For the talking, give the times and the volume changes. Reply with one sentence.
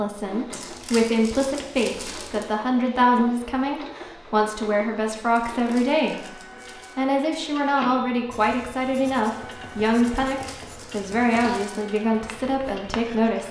The talking can be heard from 0.0 to 13.4 s, at a steady volume.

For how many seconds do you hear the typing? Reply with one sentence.
You can't hear the typing here.